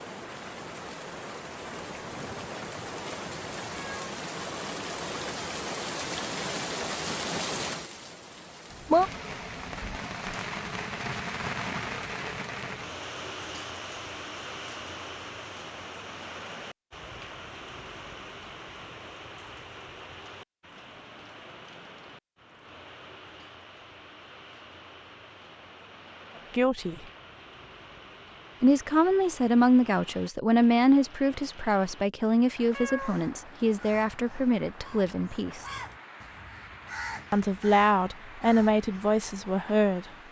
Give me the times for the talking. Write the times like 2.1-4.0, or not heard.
26.5-27.1, 28.6-35.6, 37.3-40.0.